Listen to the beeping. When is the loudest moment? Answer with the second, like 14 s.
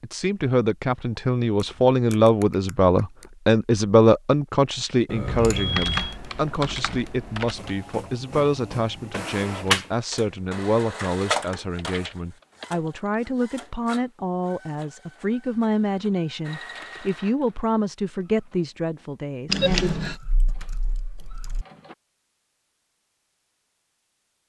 20 s.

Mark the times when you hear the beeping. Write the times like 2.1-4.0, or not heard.
5.2-6.2, 19.5-20.1.